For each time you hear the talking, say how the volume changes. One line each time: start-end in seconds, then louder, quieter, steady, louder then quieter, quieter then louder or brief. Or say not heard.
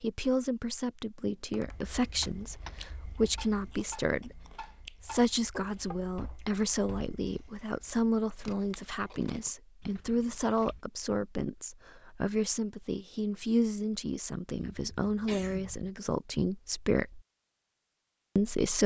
0.0-17.2 steady
18.4-18.8 brief.